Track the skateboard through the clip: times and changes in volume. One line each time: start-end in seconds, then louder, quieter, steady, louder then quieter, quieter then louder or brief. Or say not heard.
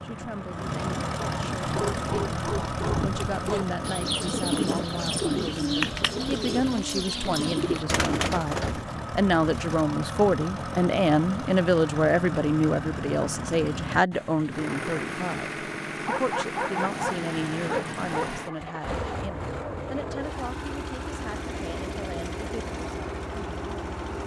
not heard.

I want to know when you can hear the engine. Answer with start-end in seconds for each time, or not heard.
0.0-24.2.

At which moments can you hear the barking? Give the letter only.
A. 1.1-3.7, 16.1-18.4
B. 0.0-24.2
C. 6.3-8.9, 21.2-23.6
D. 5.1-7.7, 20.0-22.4
A.